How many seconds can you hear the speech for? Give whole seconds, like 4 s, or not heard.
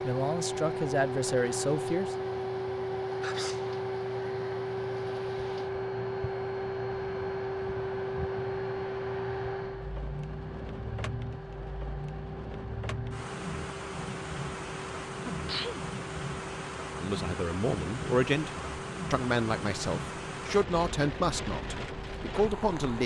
8 s.